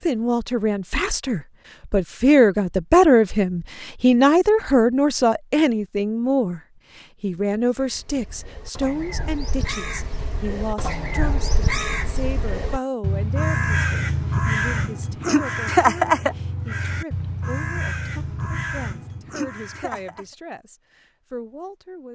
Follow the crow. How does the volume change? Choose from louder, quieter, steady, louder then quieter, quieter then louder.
louder then quieter.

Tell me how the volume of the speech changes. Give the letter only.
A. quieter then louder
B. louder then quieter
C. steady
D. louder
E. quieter
E.